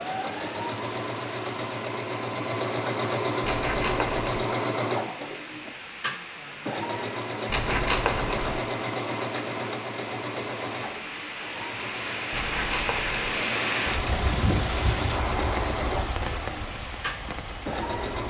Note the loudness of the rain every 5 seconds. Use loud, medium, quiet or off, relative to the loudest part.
medium, medium, loud, loud.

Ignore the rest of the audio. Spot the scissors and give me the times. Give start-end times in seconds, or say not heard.
3.4-4.5, 7.5-8.6, 12.3-13.4.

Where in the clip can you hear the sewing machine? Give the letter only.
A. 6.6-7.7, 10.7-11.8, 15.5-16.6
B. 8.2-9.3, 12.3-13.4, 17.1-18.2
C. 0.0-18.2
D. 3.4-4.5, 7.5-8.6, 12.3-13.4
C.